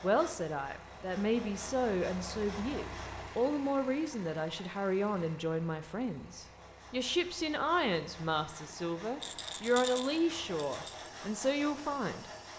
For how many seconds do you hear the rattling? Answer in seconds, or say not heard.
2 s.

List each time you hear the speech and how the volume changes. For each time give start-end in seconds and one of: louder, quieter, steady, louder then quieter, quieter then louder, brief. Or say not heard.
0.0-12.2 steady.